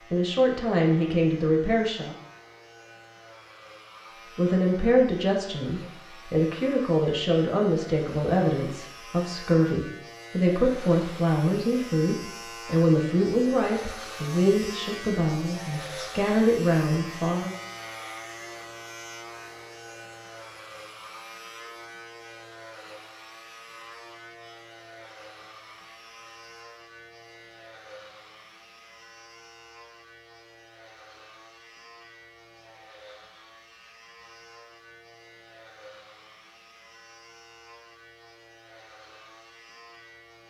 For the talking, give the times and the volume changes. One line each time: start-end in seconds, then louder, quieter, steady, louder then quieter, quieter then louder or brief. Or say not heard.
0.1-2.1 brief
4.3-17.6 steady.